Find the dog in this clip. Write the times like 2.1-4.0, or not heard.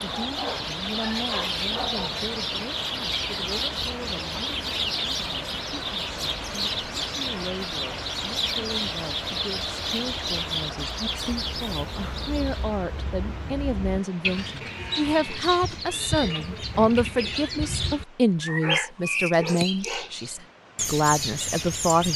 0.2-2.1, 18.4-20.1.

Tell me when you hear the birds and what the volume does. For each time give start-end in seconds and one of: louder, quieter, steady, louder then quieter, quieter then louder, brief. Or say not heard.
0.0-22.1 steady.